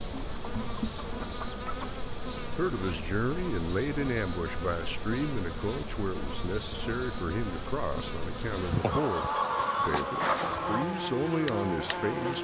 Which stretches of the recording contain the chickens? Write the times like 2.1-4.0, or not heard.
0.1-1.9, 8.8-10.8.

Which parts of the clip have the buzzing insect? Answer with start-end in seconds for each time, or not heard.
0.0-12.3.